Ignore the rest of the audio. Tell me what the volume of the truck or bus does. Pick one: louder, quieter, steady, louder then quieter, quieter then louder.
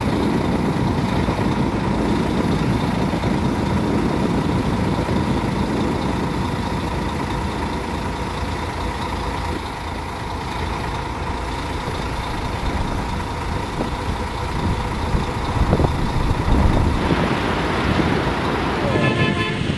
steady.